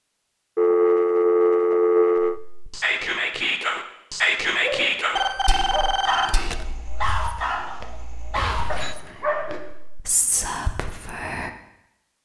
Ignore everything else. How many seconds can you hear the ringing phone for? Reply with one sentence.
You can hear the ringing phone for 4 seconds altogether.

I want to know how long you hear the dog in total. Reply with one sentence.
The dog can be heard for 5 seconds in total.